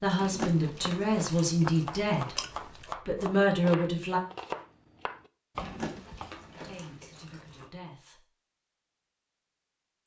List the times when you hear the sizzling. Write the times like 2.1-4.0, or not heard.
not heard.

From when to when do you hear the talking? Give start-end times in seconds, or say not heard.
0.0-2.4, 3.0-4.2, 6.5-8.2.